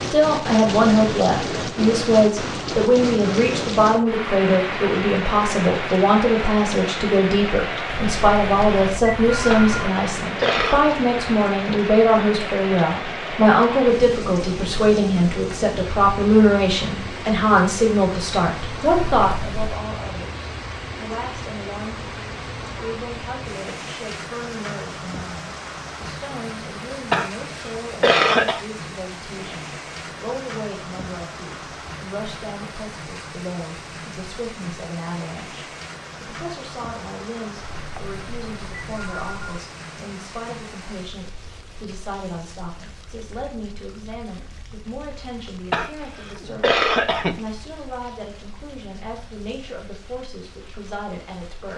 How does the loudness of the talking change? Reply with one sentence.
The volume of the talking goes down.